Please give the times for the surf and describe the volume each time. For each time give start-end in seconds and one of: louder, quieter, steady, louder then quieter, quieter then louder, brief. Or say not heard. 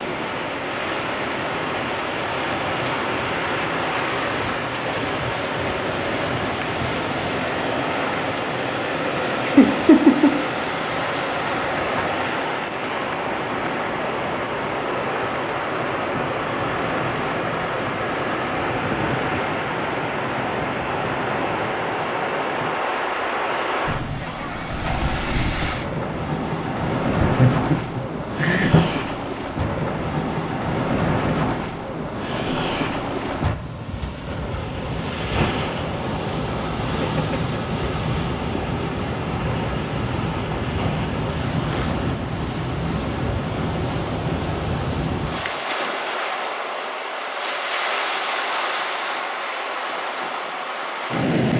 0.0-51.5 steady.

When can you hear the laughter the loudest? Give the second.
10 s.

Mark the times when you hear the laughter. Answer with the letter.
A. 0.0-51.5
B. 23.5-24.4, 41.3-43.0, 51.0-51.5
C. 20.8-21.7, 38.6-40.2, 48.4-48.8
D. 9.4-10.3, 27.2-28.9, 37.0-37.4
D.